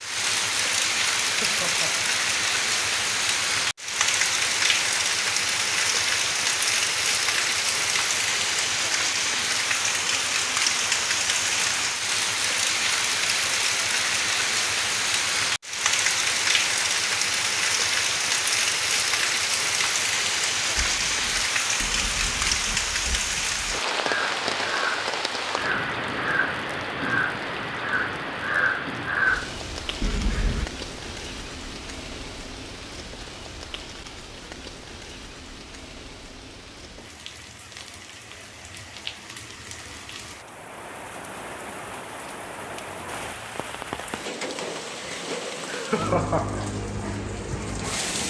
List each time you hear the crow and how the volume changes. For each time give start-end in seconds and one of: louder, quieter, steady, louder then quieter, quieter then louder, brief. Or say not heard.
20.8-30.6 louder.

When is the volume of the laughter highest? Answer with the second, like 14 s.
46 s.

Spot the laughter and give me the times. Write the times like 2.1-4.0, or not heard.
1.2-2.1, 45.6-46.6.